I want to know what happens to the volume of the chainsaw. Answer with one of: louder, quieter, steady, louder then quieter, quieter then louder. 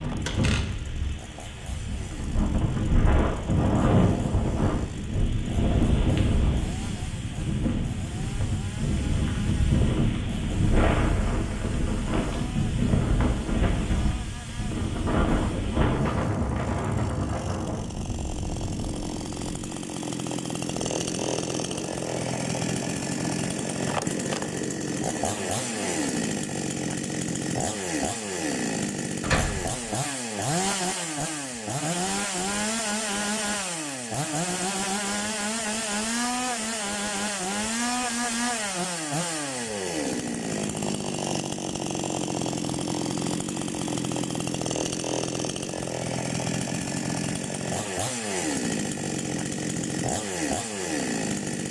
louder.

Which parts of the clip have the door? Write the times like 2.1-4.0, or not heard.
0.2-0.9, 29.2-29.9.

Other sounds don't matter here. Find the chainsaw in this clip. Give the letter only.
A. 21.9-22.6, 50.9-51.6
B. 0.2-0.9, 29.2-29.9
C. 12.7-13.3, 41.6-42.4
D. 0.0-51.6
D.